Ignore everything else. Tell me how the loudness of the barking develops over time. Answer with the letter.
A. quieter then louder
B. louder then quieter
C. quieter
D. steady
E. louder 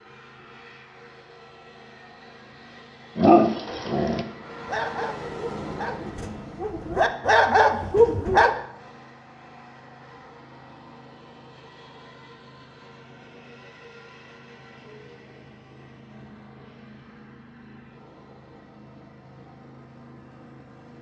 A.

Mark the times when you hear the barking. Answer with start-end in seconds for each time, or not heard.
3.1-8.5.